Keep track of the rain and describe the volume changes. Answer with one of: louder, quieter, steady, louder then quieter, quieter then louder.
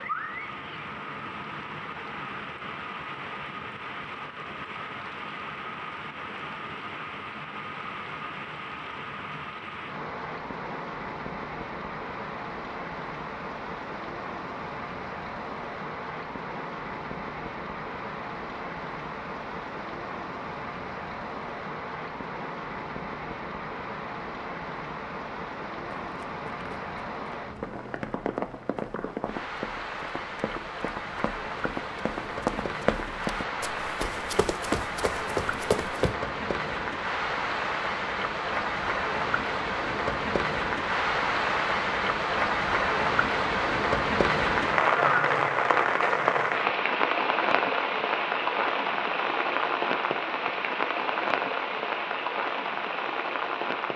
louder.